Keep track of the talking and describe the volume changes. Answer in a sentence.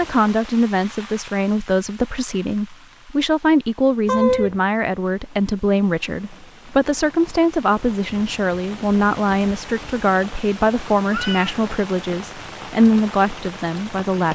The volume of the talking stays about the same.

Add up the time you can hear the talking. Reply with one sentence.
The talking can be heard for 14 seconds in total.